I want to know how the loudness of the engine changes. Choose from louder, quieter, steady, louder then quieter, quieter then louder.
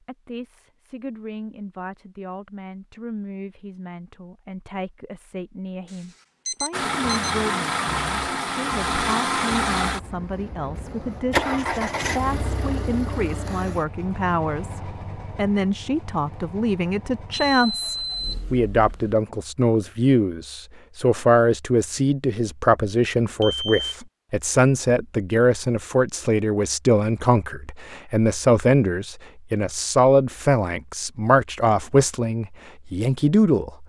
quieter.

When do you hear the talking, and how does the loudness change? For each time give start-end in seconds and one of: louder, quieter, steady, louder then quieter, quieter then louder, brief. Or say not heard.
0.0-33.8 louder.